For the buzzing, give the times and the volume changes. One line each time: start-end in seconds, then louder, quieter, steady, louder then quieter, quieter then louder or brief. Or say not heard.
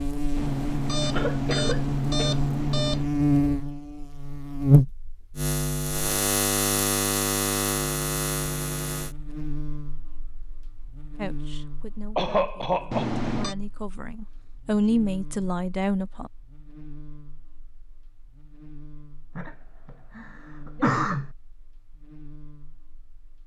0.0-23.4 quieter.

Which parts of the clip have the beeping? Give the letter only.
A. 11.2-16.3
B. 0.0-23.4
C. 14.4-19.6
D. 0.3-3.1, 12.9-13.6
D.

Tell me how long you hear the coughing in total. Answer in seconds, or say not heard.
4 s.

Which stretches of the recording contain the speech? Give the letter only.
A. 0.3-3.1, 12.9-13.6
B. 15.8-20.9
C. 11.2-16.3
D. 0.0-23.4
C.